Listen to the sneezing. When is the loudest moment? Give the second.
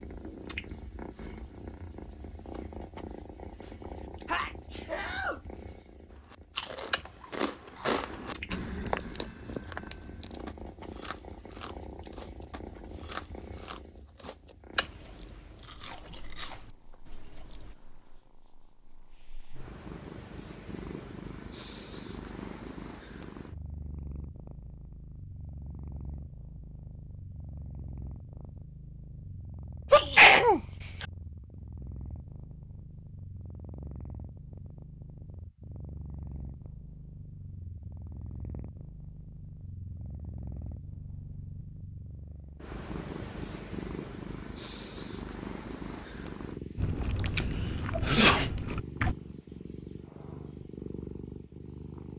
30 s.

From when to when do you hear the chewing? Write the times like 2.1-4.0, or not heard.
6.2-17.8, 46.8-49.1.